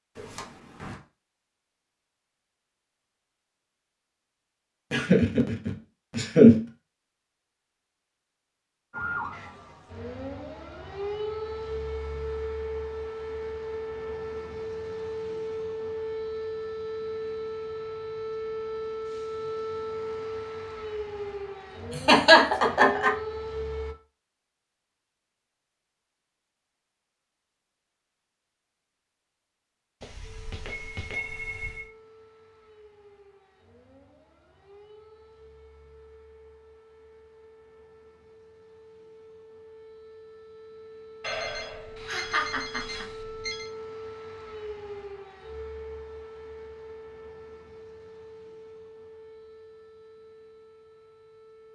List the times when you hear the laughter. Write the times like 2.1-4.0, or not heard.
4.9-6.5, 21.9-23.1, 42.0-43.0.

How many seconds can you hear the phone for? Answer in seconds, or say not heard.
5 s.